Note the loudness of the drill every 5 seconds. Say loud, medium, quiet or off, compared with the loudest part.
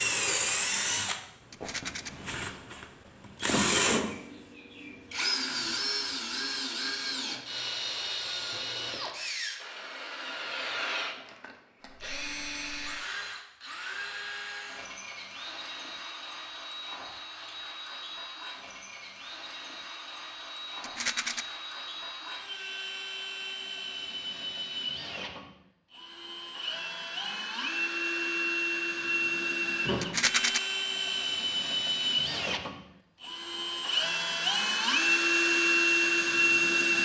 medium, medium, quiet, quiet, quiet, medium, medium, loud.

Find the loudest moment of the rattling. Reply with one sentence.
The loudest moment of the rattling is at 30 seconds.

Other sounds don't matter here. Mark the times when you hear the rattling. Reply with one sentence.
You can hear the rattling from 1.5 to 2.1 s, from 20.8 to 21.4 s and from 30.0 to 30.6 s.